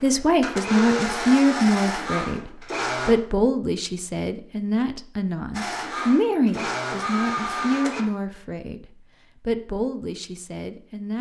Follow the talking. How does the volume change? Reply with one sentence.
The volume of the talking goes down.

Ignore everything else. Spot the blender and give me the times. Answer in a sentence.
The blender can be heard from 0.0 to 3.1 s and from 5.5 to 8.1 s.